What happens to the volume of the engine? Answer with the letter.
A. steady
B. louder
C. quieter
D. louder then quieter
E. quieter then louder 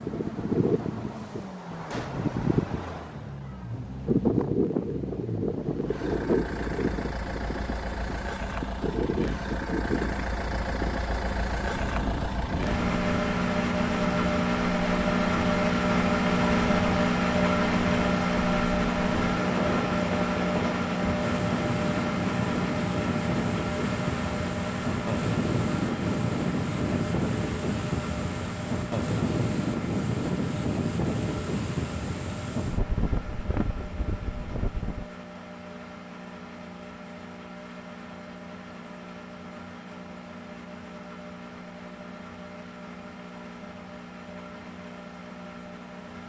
D.